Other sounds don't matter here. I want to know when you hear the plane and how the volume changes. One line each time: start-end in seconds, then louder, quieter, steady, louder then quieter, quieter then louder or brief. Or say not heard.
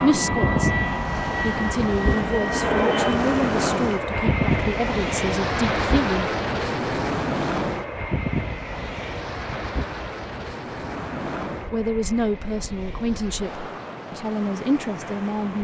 0.0-15.3 quieter.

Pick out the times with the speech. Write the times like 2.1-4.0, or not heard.
0.0-6.3, 11.7-15.5.